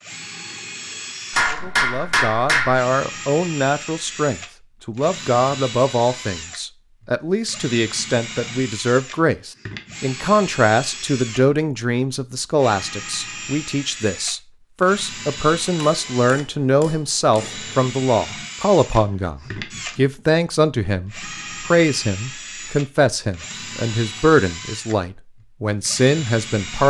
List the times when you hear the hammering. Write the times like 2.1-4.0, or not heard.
1.3-2.8, 15.8-17.8.